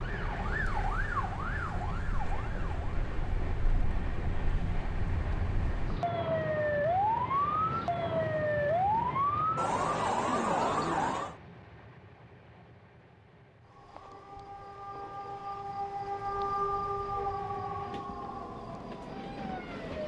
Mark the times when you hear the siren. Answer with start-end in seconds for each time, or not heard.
0.0-11.3, 13.7-20.0.